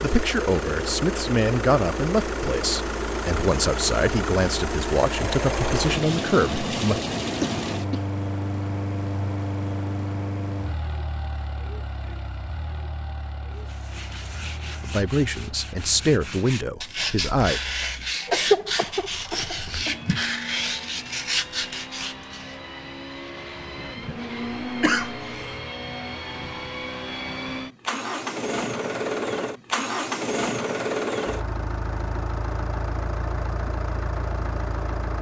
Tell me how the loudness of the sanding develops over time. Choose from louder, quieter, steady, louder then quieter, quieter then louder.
louder.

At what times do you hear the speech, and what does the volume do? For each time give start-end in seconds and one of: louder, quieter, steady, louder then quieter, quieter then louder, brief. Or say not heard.
0.0-7.0 steady
14.8-17.6 brief.